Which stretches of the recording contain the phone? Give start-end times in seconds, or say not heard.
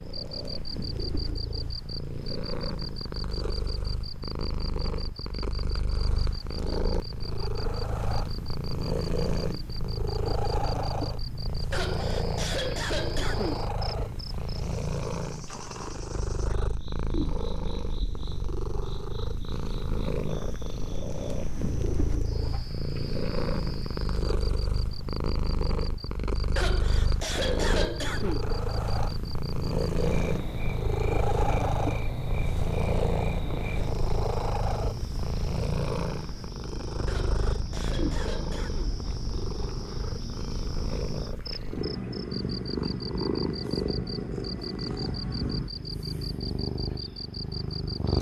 not heard.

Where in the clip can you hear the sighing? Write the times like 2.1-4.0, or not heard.
11.7-13.7, 26.6-28.4, 37.0-39.0.